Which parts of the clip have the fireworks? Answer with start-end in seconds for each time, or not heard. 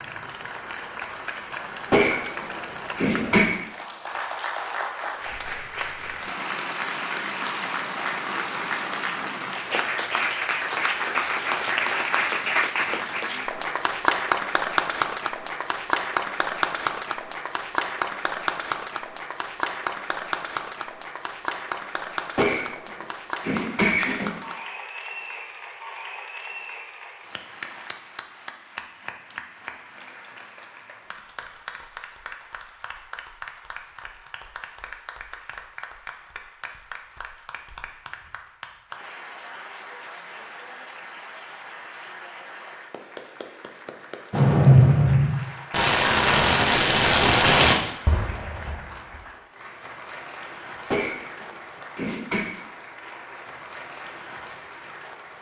44.3-48.8.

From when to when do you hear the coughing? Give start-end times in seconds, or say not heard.
1.9-3.5, 22.4-24.3, 50.9-52.5.